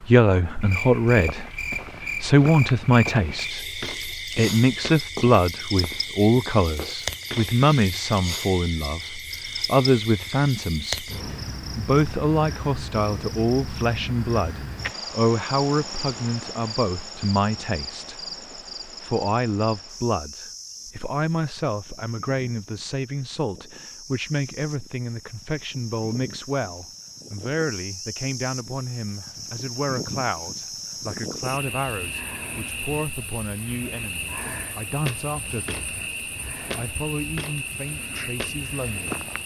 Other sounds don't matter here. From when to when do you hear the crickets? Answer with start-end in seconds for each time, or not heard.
0.0-39.4.